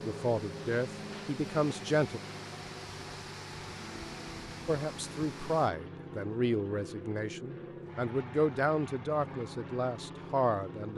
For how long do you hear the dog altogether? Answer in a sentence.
You can't hear the dog here.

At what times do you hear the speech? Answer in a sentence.
You can hear the speech from 0.0 to 2.2 s and from 4.7 to 10.9 s.